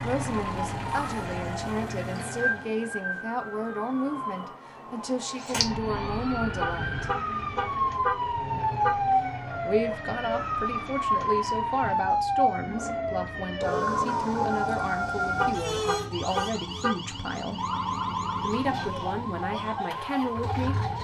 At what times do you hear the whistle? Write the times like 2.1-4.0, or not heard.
not heard.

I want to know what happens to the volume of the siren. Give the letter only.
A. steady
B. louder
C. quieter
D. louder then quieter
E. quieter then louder
D.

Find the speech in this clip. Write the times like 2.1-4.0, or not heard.
0.0-7.0, 9.7-17.6, 18.4-20.9.